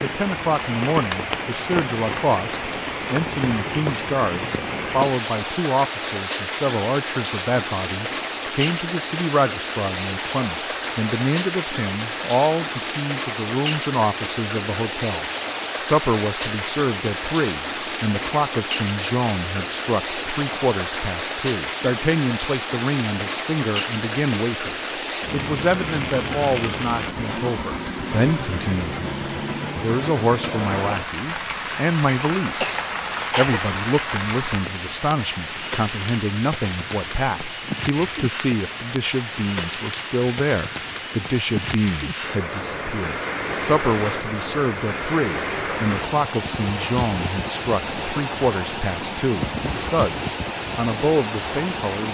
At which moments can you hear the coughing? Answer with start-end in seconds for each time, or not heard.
32.6-33.6.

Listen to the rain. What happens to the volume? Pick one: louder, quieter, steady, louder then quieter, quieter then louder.
steady.